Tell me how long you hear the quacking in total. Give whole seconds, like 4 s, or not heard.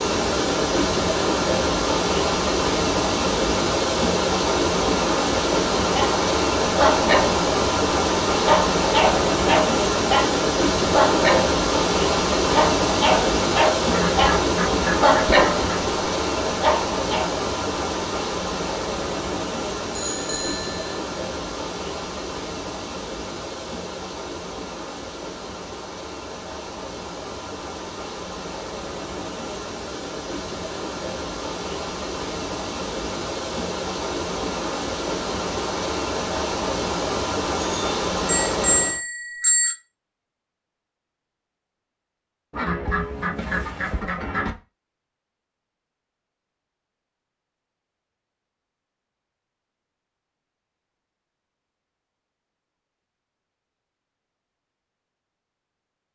4 s.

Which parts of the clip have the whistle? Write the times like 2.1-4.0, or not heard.
not heard.